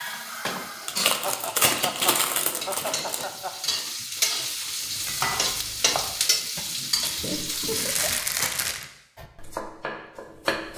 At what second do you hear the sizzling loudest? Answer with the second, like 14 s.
6 s.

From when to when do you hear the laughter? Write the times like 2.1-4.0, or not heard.
1.2-3.5, 7.3-8.2.